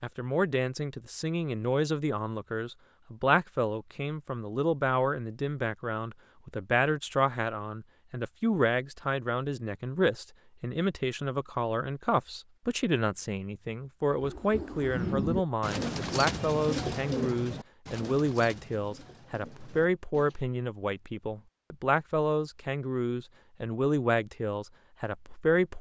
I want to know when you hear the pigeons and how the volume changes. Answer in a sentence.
The pigeons can be heard from 14.1 to 20.4 s, getting quieter.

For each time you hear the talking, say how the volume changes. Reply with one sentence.
The talking can be heard from 0.0 to 25.7 s, at a steady volume.